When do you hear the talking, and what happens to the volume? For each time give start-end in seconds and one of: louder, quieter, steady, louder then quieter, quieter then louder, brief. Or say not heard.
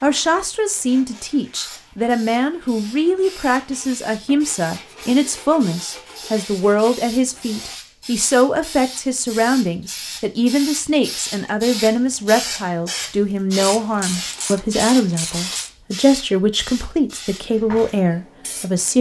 0.0-18.9 steady.